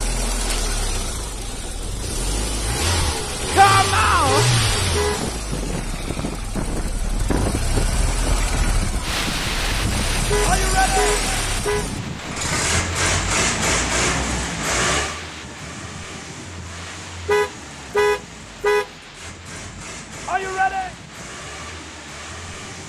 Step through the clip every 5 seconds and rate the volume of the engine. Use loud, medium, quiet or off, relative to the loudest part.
loud, medium, loud, quiet, quiet.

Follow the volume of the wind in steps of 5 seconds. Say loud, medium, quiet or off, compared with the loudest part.
medium, loud, loud, quiet, quiet.